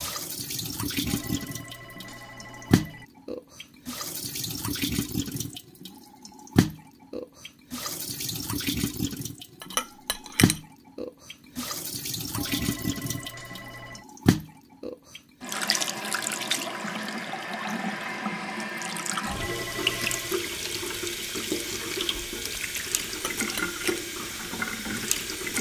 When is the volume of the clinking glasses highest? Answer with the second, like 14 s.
10 s.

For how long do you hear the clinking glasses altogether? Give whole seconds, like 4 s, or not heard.
2 s.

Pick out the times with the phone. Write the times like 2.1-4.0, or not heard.
1.1-3.0, 12.3-14.1, 19.2-20.4.